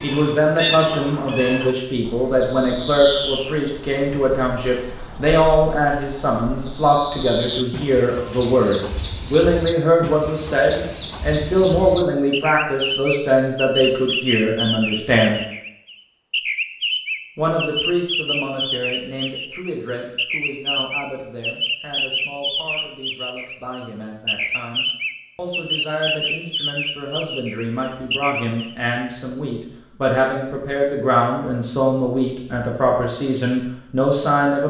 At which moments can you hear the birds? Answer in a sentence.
You can hear the birds from 0.0 to 28.8 s.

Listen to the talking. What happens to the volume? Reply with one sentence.
The volume of the talking goes down, then up.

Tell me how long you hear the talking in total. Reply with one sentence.
The talking can be heard for 33 seconds in total.